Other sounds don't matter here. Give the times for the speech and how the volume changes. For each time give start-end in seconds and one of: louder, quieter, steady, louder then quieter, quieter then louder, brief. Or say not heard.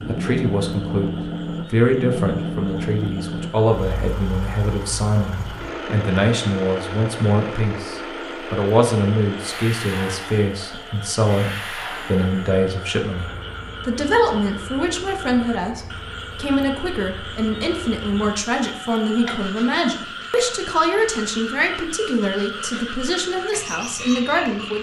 0.1-24.7 steady.